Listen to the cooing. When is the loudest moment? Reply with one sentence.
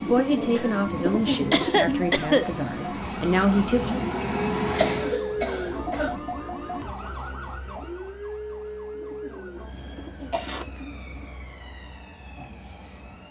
The volume of the cooing peaks at 1 second.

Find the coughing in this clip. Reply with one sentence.
The coughing can be heard from 0.9 to 2.6 s, from 4.8 to 6.2 s and from 9.8 to 10.7 s.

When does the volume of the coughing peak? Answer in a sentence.
The loudest moment of the coughing is at 2 seconds.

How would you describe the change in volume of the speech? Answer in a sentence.
The loudness of the speech goes down, then up.